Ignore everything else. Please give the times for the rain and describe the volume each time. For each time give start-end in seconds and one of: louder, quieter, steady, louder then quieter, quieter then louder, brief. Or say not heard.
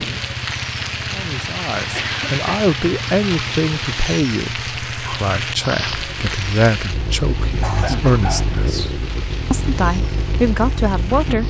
0.0-11.4 quieter.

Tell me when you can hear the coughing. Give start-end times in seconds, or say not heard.
1.9-2.5, 7.6-8.5.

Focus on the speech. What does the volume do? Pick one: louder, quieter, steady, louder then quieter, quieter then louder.
steady.